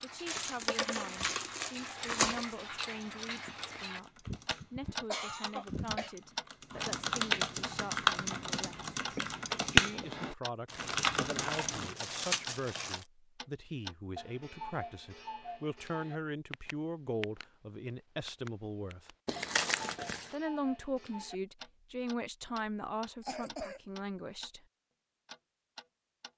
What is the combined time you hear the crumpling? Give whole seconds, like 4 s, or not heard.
6 s.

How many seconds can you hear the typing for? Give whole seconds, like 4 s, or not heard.
9 s.